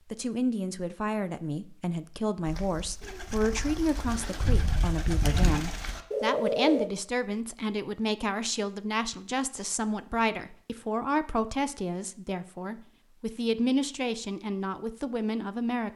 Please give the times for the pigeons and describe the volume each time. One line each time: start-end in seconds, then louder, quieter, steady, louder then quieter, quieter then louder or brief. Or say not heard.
2.5-6.9 louder.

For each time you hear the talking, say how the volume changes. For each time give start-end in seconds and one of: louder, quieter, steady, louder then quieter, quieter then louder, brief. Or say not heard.
0.1-15.9 steady.